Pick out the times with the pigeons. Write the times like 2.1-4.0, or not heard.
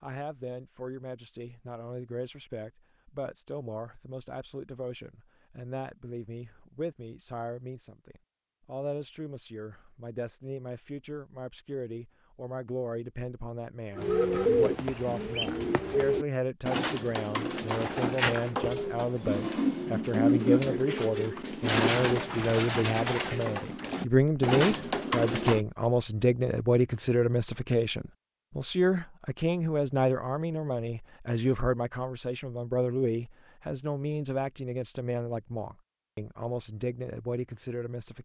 13.9-25.6.